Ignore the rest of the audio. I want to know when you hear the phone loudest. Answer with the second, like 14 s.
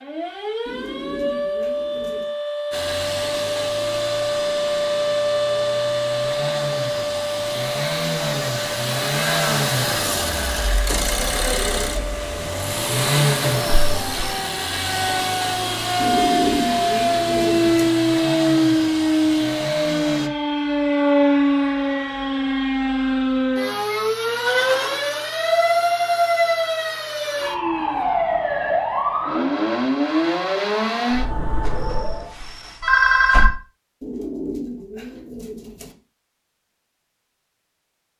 33 s.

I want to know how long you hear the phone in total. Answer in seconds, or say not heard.
3 s.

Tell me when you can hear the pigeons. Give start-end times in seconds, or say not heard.
0.7-2.3, 15.9-17.9, 34.0-36.0.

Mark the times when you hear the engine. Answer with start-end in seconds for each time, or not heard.
2.7-20.3.